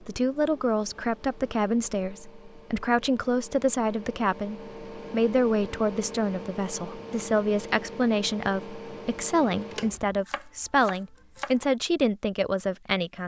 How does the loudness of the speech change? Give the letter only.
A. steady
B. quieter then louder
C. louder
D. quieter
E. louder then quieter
A.